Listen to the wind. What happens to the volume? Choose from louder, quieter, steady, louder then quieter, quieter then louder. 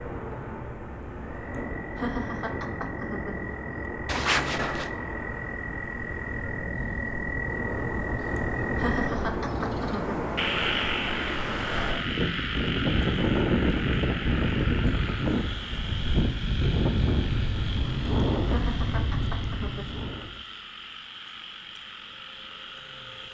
louder.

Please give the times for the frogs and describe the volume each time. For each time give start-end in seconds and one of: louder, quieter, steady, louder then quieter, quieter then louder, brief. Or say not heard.
0.0-23.3 louder then quieter.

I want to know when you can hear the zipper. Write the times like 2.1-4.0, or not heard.
4.0-4.9.